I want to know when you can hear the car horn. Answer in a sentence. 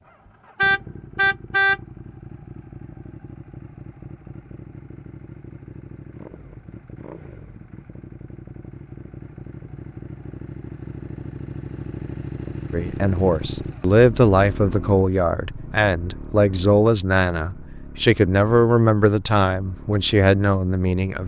You can hear the car horn from 0.6 to 1.8 s.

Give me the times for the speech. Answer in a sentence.
The speech can be heard from 12.7 to 21.2 s.